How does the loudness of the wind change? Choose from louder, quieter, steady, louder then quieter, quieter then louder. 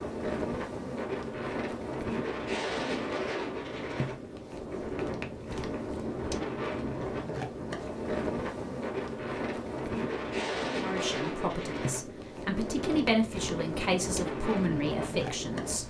steady.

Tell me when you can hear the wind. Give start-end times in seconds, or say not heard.
0.0-15.8.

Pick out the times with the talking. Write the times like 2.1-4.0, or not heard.
10.8-15.8.